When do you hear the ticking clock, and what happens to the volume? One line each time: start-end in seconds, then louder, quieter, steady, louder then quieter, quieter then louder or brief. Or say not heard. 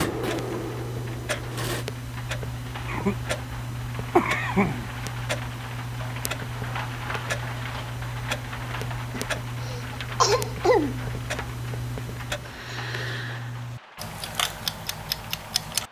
0.0-15.8 steady.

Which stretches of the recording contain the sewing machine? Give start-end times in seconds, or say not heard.
0.0-1.9.